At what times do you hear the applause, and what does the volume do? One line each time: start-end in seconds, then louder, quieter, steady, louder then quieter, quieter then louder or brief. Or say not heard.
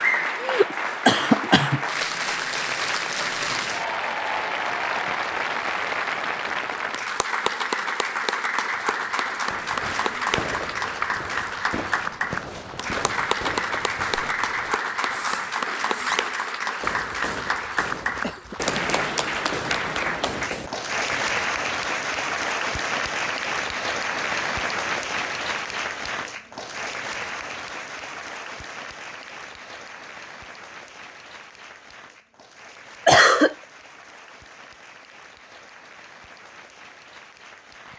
0.0-37.9 quieter.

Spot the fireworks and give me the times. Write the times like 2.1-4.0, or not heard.
9.4-21.2.